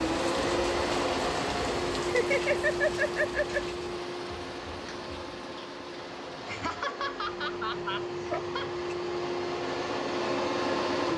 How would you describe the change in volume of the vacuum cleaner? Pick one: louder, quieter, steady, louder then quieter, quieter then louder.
quieter then louder.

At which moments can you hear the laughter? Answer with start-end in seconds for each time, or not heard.
2.0-3.6, 6.5-8.7.